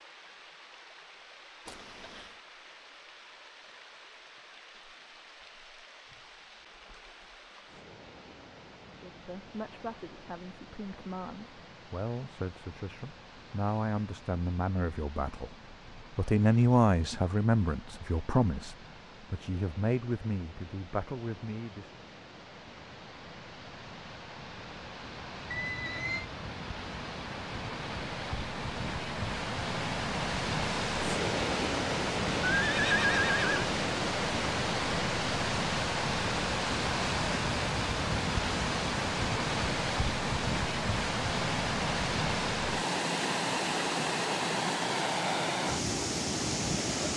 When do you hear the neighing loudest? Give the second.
33 s.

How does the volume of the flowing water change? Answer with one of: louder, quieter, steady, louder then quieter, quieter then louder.
louder.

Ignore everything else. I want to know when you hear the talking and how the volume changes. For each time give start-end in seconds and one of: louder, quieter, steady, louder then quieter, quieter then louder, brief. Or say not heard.
9.0-22.1 louder then quieter.